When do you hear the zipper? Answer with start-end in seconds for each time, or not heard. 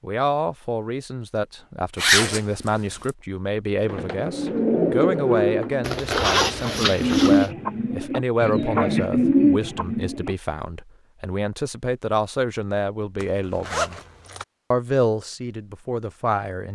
1.9-3.1, 5.8-7.5, 13.2-14.4.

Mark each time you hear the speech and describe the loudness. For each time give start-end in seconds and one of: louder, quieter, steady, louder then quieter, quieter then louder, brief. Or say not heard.
0.0-14.0 steady
14.7-16.7 brief.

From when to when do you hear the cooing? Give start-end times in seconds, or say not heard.
3.9-10.3.